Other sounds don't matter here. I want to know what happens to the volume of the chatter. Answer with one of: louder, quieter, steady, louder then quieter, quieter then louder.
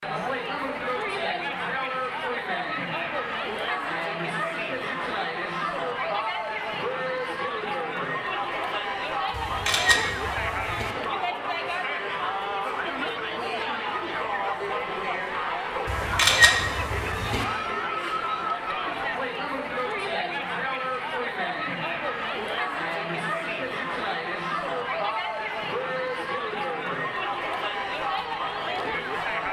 steady.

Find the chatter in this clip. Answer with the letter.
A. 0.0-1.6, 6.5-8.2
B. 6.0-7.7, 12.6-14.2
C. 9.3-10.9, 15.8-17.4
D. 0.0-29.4
D.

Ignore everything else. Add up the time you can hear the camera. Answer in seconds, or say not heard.
3 s.